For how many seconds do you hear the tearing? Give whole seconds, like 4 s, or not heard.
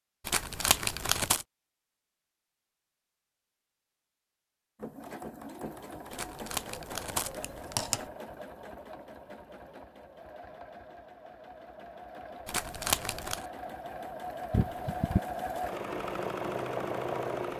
4 s.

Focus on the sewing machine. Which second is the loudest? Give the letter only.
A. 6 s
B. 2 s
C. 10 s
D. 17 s
D.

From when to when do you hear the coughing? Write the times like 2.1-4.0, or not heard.
14.5-15.2.